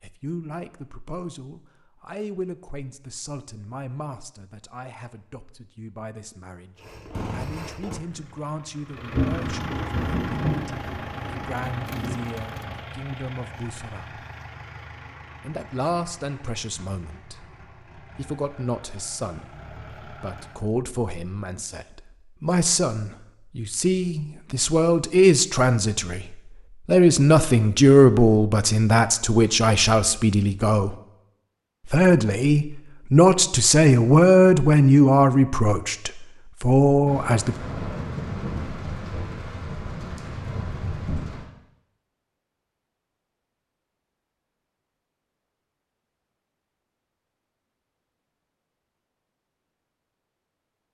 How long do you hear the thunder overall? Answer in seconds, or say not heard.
8 s.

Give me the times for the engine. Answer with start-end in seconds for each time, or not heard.
6.8-20.7.